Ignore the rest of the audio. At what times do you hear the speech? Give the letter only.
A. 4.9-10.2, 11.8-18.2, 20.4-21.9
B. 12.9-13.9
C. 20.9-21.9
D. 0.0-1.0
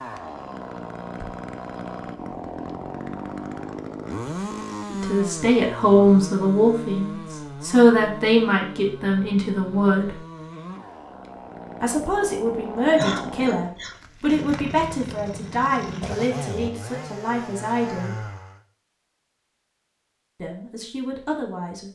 A.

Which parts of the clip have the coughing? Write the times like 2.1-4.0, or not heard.
12.9-13.9.